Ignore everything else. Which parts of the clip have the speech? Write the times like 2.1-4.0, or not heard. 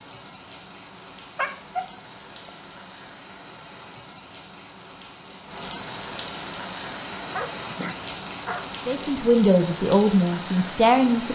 8.8-11.3.